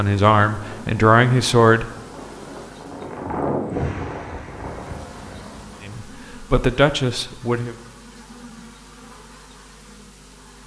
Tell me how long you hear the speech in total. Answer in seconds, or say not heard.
4 s.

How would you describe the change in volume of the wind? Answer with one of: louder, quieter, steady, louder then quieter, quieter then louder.
louder then quieter.